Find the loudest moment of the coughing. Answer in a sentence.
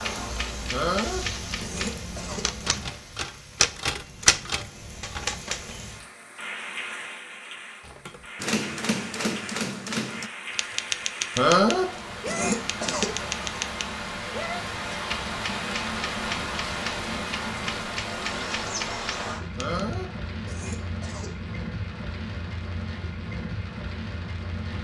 The volume of the coughing peaks at 12 seconds.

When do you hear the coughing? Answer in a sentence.
You can hear the coughing from 0.7 to 2.5 s, from 11.3 to 13.1 s and from 19.6 to 21.3 s.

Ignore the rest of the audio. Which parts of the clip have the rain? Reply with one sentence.
The rain can be heard from 0.0 to 24.7 s.